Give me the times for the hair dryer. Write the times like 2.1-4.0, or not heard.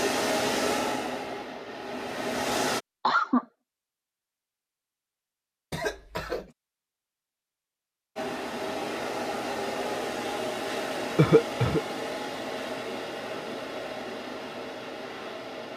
0.0-2.8, 8.2-15.7.